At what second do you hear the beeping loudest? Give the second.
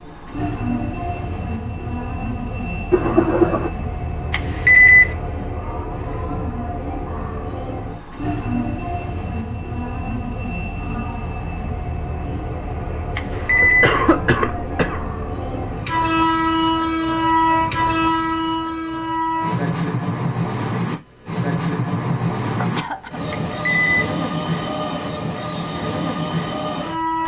5 s.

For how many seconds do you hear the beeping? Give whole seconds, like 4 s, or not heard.
2 s.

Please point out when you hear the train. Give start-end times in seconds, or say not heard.
0.0-27.2.